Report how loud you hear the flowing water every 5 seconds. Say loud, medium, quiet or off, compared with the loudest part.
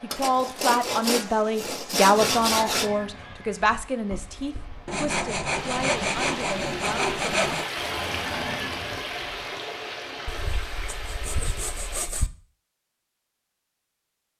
quiet, loud, medium.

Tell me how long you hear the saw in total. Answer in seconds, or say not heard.
8 s.